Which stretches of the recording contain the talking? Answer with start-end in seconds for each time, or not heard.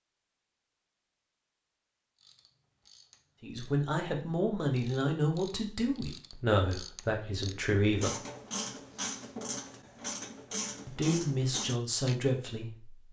3.4-8.2, 10.8-12.9.